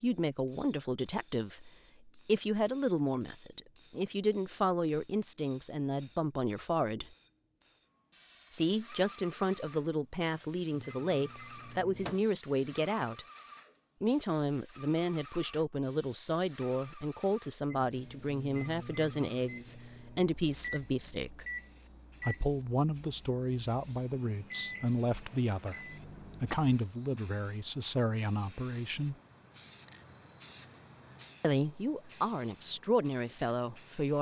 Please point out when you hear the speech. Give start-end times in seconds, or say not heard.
0.0-7.1, 8.5-13.2, 14.0-21.4, 22.2-29.1, 31.4-34.1.